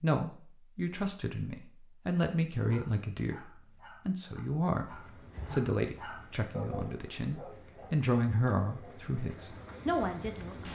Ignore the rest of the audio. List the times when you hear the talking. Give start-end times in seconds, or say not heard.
0.0-10.6.